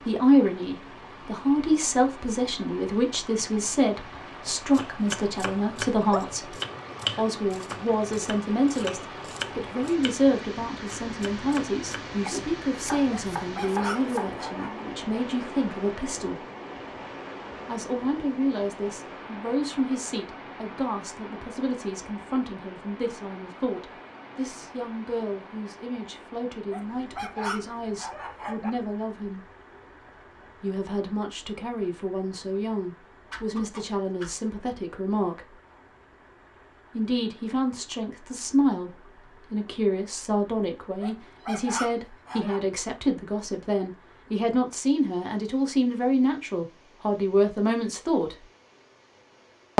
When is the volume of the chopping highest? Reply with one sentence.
The loudest moment of the chopping is at 7 seconds.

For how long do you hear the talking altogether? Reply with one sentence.
The talking can be heard for 44 seconds in total.